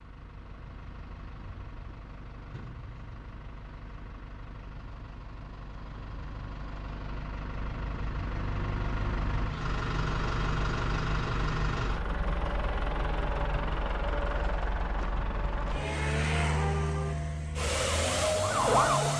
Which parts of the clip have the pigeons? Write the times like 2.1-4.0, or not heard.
not heard.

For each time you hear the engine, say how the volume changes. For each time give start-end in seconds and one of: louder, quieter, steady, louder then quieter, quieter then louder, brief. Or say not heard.
0.0-19.1 louder.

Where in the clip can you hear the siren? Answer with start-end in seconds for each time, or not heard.
17.6-19.1.